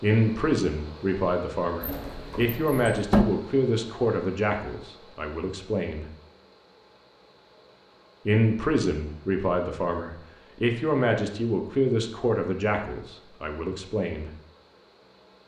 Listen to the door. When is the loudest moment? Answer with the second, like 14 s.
3 s.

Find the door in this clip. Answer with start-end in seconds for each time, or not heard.
1.8-3.2.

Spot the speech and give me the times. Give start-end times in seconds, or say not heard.
0.0-6.0, 8.2-14.3.